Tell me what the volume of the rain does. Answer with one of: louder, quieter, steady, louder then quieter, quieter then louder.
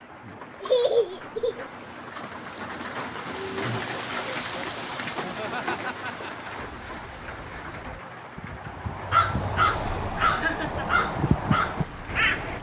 louder then quieter.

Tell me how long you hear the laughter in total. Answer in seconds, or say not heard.
3 s.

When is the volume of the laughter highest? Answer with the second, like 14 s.
1 s.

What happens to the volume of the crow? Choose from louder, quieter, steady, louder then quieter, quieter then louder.
louder.